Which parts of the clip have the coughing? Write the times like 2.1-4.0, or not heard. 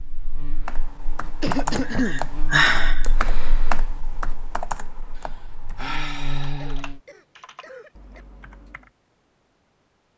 1.4-2.8, 6.5-8.2.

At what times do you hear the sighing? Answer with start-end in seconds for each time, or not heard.
1.9-3.0, 5.2-6.8.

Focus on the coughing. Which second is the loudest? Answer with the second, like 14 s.
2 s.